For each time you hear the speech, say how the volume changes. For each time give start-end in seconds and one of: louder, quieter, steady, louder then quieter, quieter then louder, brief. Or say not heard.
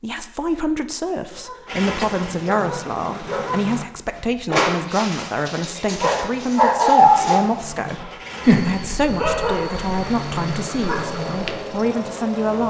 0.0-12.6 steady.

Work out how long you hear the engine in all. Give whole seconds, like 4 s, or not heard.
9 s.